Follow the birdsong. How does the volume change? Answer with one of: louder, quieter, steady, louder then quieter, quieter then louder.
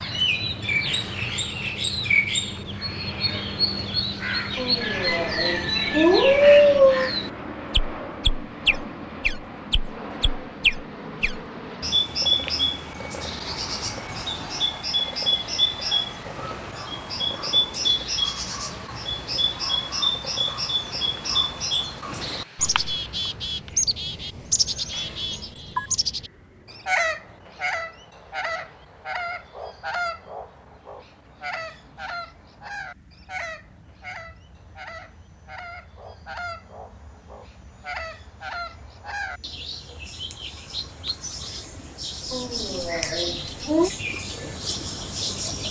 quieter.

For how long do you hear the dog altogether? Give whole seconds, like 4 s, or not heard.
4 s.